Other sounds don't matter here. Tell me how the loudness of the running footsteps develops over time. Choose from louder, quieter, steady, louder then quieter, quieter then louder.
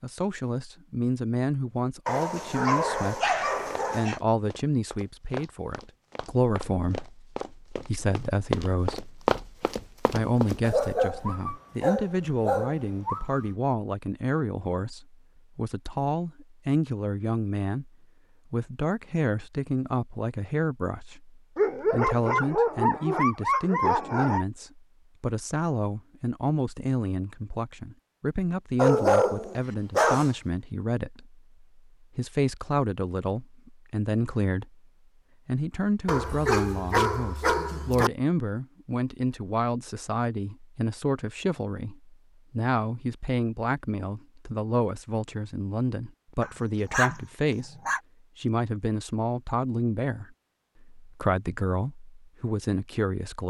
louder.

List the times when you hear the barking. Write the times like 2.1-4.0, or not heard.
2.0-4.2, 10.6-13.4, 21.6-24.4, 28.8-30.3, 36.0-38.1, 46.4-48.0.